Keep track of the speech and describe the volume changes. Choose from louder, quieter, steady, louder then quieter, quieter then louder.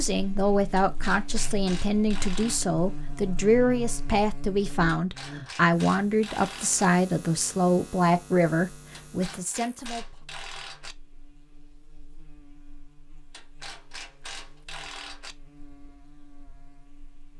steady.